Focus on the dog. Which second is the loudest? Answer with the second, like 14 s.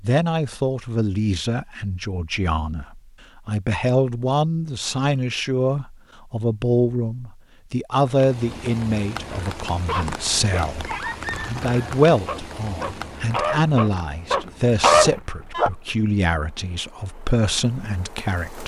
15 s.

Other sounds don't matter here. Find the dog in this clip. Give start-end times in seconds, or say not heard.
9.8-15.7.